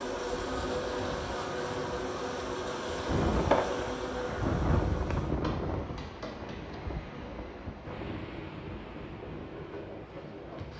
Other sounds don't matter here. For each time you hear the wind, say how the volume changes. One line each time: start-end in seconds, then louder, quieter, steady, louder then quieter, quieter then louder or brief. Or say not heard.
0.0-10.7 louder then quieter.